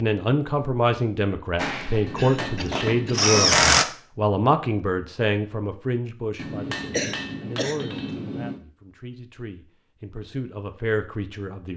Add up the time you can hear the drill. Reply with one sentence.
You can hear the drill for 2 seconds altogether.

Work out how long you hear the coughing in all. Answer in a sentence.
The coughing can be heard for 2 seconds in total.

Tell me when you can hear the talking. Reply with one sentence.
The talking can be heard from 0.0 to 11.7 s.